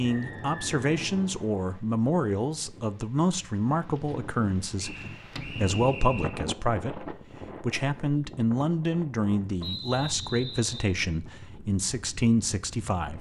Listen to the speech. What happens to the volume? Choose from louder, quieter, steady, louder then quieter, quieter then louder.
steady.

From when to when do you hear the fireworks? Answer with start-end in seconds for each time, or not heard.
not heard.